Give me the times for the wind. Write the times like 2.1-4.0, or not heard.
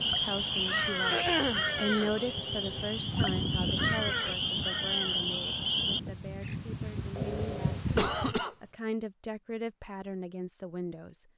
0.1-8.3.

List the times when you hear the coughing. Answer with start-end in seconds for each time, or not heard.
1.1-1.6, 8.0-8.6.